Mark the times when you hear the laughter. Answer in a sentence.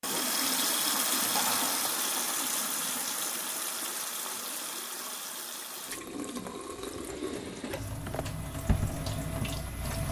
You can hear the laughter from 1.1 to 1.9 s.